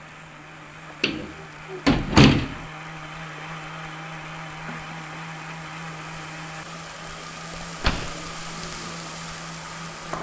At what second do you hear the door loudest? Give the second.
2 s.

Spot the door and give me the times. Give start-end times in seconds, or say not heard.
1.0-2.5, 7.8-8.3.